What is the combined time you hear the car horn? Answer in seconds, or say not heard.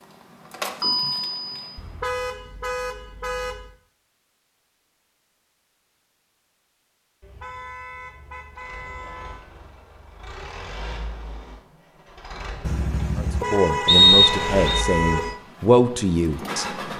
7 s.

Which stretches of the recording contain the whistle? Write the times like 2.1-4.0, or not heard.
13.8-14.8.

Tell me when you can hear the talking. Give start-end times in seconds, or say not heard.
13.2-16.6.